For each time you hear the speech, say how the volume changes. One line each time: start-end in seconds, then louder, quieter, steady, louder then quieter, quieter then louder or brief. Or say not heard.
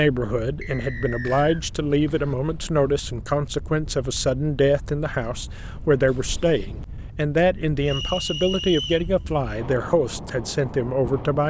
0.0-11.4 steady.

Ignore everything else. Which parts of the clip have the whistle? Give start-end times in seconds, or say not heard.
0.6-1.6, 7.8-9.1.